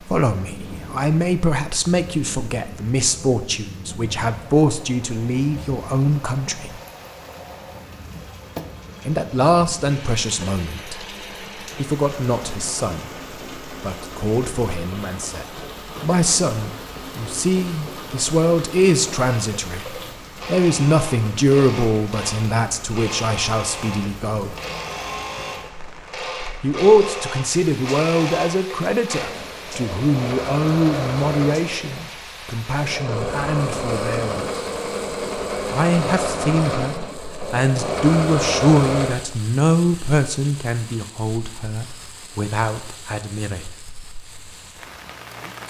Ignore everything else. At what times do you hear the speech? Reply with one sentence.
You can hear the speech from 0.1 to 6.8 s, from 9.1 to 11.1 s, from 11.8 to 13.1 s, from 13.8 to 24.6 s, from 26.6 to 34.6 s and from 35.7 to 43.6 s.